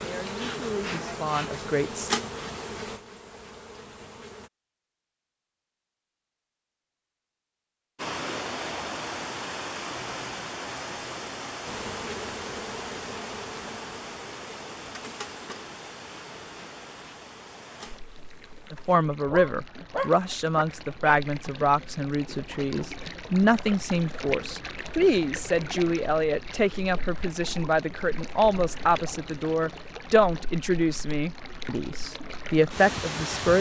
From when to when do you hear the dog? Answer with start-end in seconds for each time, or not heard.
19.2-21.1.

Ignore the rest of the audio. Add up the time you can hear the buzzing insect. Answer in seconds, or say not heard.
12 s.